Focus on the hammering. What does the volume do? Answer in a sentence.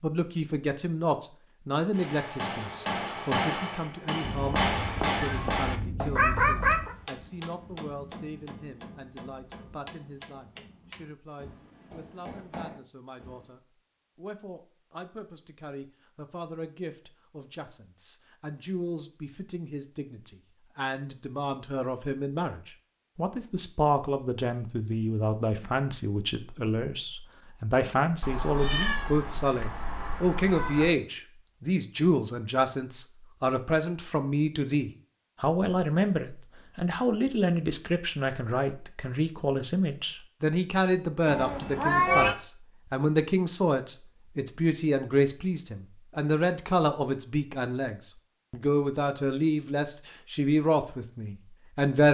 The loudness of the hammering goes down.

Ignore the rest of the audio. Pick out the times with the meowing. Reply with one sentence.
The meowing can be heard from 4.2 to 7.0 s, from 28.2 to 30.9 s and from 41.2 to 42.4 s.